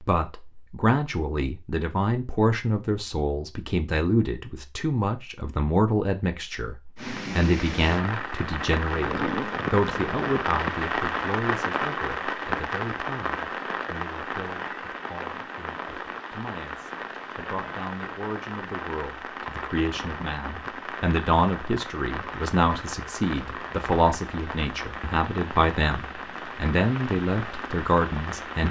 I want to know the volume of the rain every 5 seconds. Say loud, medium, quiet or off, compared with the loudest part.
off, loud, loud, medium, medium, medium.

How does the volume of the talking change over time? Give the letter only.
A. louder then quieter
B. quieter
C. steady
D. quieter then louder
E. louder
D.